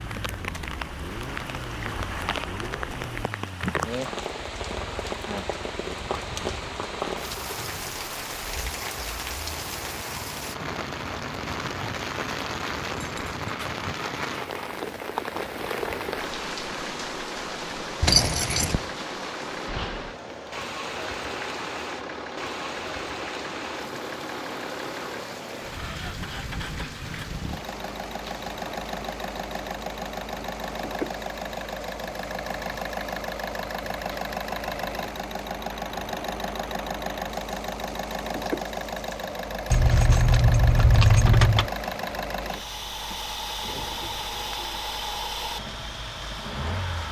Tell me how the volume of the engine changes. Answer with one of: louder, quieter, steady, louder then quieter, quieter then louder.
louder.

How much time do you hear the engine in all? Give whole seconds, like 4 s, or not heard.
47 s.